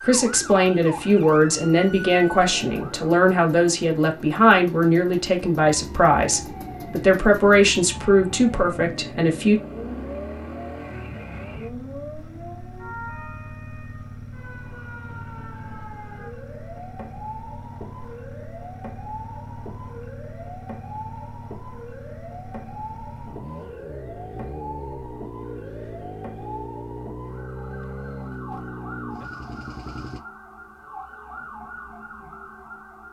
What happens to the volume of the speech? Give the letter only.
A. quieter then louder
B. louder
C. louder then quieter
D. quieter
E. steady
E.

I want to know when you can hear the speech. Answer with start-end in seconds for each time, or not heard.
0.0-9.6.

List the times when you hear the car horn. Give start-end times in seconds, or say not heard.
not heard.